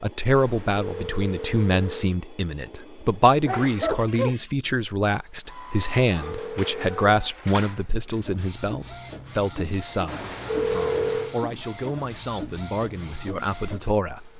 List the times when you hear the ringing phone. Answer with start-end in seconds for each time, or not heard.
0.3-2.1, 5.8-7.2, 10.1-11.3.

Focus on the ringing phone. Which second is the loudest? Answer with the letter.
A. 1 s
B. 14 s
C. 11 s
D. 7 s
C.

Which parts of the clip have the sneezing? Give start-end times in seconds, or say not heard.
3.5-4.3.